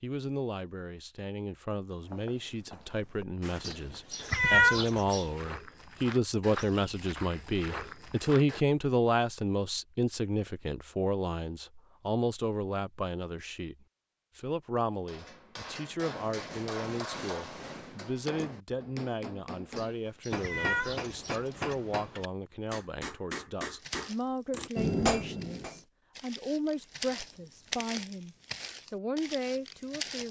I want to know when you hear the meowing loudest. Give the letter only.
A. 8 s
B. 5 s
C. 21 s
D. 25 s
B.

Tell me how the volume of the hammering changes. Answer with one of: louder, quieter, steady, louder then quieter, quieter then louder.
louder.